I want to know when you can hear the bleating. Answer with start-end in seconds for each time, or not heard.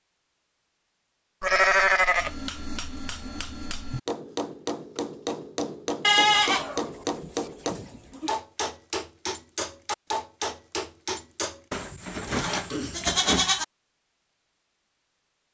1.4-2.3, 6.0-8.3, 11.7-13.7.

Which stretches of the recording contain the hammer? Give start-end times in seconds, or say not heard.
2.1-11.6.